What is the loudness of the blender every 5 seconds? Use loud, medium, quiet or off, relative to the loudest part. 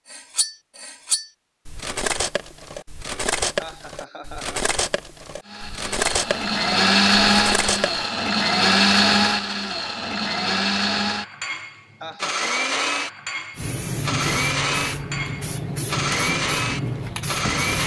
off, loud, medium, medium.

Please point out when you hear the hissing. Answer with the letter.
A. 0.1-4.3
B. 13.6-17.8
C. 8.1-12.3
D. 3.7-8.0
B.